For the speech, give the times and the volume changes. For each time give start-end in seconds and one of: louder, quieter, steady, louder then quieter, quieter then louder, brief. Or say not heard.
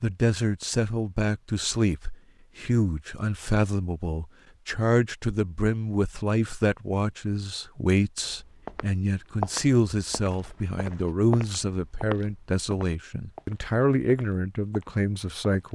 0.0-15.7 steady.